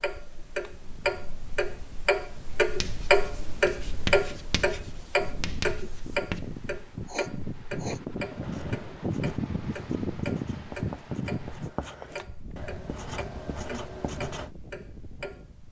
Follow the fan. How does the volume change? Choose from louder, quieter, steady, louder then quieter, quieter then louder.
louder then quieter.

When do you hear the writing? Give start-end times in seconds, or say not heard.
2.8-14.5.